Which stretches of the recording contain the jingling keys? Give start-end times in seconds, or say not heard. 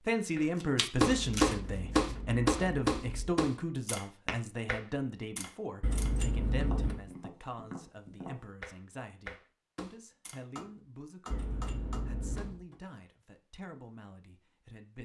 1.1-3.4, 5.8-7.0, 11.3-12.6.